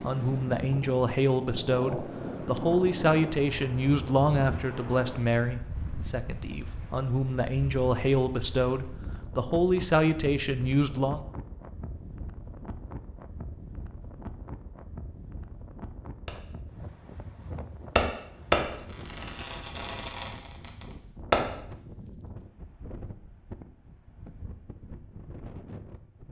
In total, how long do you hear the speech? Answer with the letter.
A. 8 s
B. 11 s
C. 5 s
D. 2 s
B.